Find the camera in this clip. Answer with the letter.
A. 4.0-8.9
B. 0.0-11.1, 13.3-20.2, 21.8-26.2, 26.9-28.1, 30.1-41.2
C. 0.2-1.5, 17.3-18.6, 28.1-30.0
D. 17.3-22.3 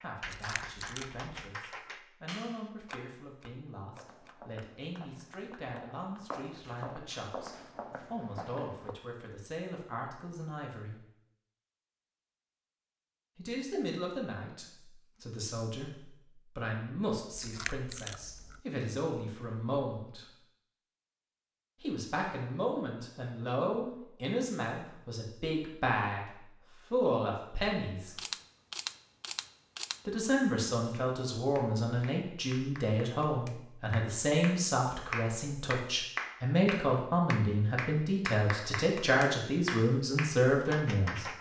C.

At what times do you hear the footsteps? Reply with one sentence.
The footsteps can be heard from 4.0 to 8.9 s.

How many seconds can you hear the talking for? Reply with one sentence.
You can hear the talking for 35 seconds altogether.